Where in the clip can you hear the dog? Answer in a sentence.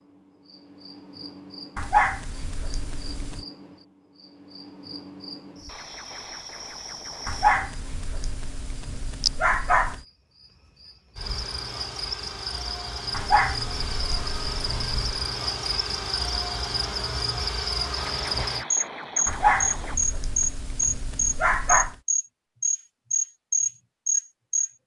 The dog can be heard from 1.8 to 3.5 s, from 7.2 to 10.0 s, from 13.1 to 15.1 s and from 19.2 to 21.9 s.